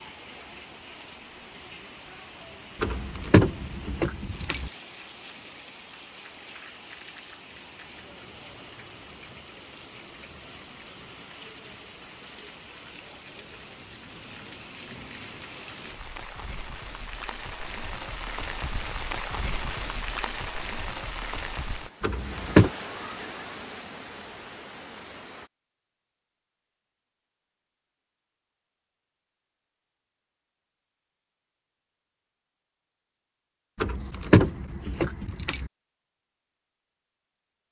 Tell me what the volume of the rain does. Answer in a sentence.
The volume of the rain goes up.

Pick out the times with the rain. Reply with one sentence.
You can hear the rain from 0.0 to 25.5 s.